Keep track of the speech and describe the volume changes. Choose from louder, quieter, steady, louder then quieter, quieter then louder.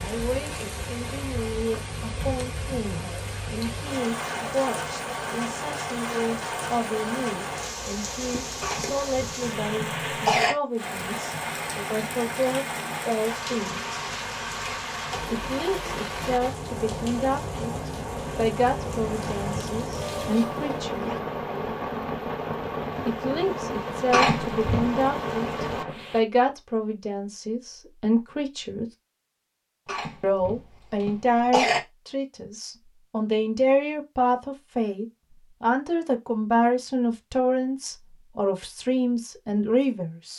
louder.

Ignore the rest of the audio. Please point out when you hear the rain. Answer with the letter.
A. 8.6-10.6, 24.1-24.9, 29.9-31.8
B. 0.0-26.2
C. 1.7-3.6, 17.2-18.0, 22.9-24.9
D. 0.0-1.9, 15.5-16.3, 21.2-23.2
B.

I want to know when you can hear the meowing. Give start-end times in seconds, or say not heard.
19.9-21.2.